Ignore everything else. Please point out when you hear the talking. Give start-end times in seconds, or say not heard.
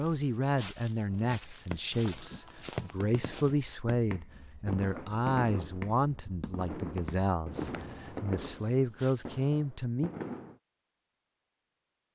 0.0-10.1.